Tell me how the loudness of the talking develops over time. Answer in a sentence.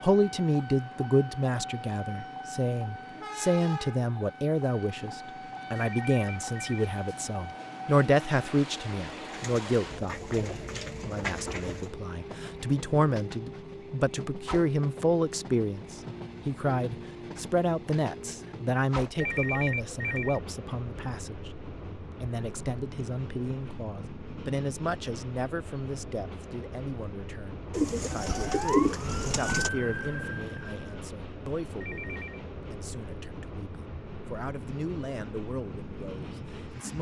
The volume of the talking goes down.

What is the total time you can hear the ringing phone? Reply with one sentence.
You can hear the ringing phone for 3 seconds altogether.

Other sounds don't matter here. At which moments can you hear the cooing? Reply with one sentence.
The cooing can be heard from 9.3 to 11.8 s and from 27.7 to 29.7 s.